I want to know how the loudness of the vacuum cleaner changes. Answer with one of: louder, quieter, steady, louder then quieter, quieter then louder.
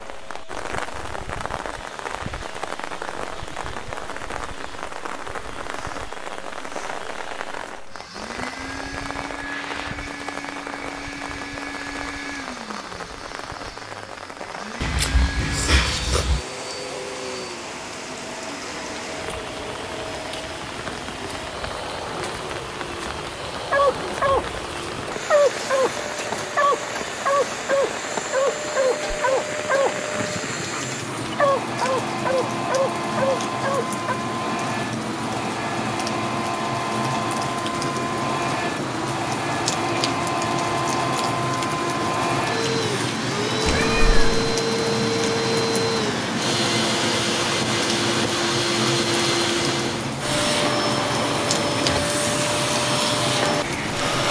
louder.